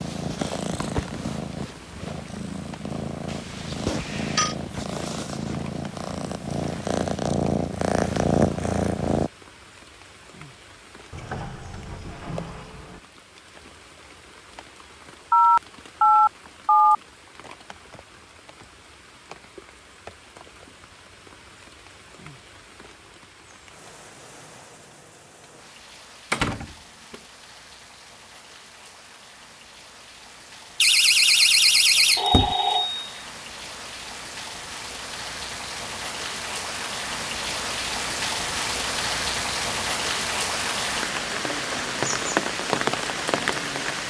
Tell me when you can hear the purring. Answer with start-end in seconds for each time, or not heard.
0.0-9.3.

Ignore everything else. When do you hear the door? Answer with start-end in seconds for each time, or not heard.
11.1-13.0, 26.3-27.2, 30.8-32.5.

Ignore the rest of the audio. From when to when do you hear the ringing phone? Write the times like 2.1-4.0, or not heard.
3.3-4.5, 15.3-16.9, 32.1-33.0.